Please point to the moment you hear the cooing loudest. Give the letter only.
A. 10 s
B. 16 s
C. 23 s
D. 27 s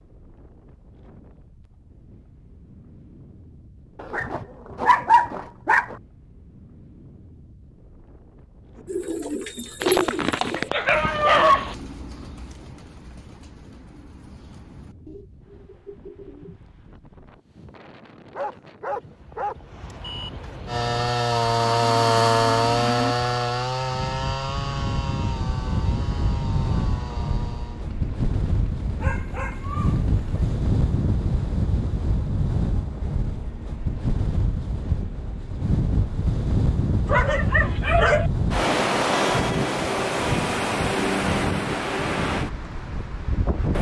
A.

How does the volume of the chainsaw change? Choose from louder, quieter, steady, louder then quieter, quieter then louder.
quieter.